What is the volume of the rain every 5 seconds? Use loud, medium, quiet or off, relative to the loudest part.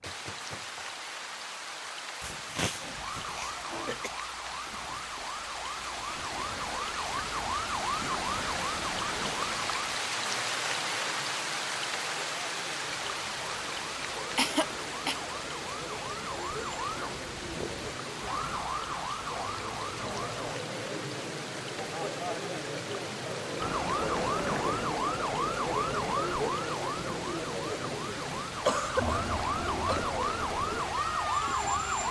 medium, loud, loud, medium, medium, medium, medium.